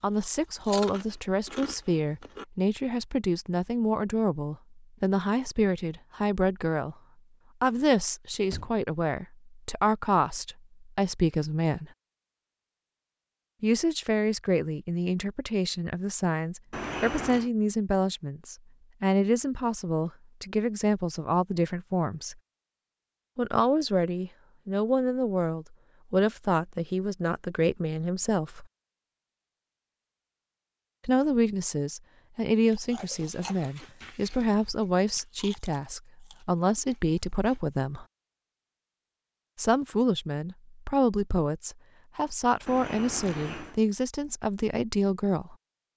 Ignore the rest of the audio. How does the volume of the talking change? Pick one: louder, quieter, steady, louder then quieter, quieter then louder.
steady.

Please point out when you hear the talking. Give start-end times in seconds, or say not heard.
0.0-7.0, 7.6-11.9, 13.6-22.4, 23.4-28.6, 31.1-38.0, 39.5-45.5.